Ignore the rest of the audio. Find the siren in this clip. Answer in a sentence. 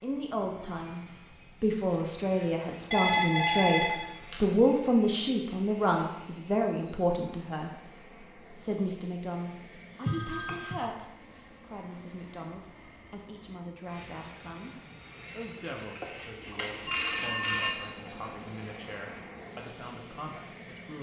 The siren can't be heard in this clip.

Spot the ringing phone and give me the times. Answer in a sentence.
The ringing phone can be heard from 2.9 to 4.5 s, from 10.1 to 10.8 s and from 15.9 to 17.7 s.